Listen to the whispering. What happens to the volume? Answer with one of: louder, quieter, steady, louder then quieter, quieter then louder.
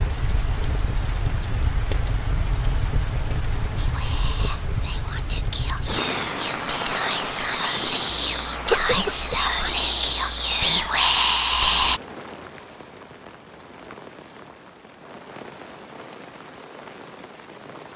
louder.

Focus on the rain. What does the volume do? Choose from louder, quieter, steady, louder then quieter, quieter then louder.
quieter.